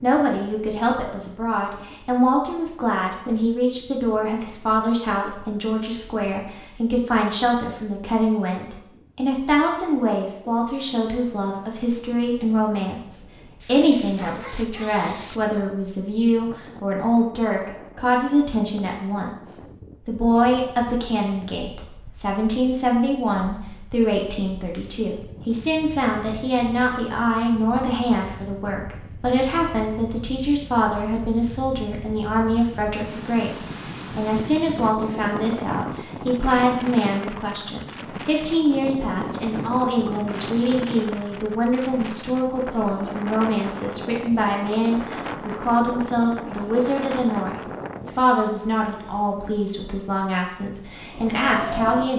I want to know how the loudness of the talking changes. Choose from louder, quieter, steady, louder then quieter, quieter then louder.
steady.